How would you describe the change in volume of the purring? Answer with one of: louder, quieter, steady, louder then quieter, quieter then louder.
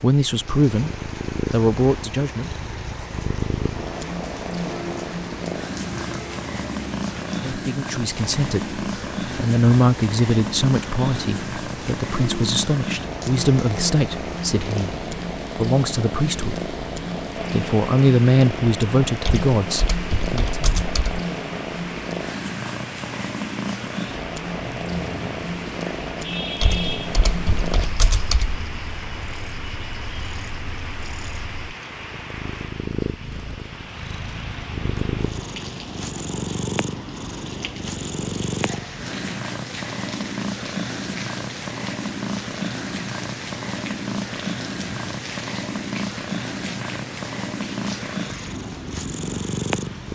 steady.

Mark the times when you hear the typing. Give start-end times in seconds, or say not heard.
19.2-21.2, 26.6-28.6.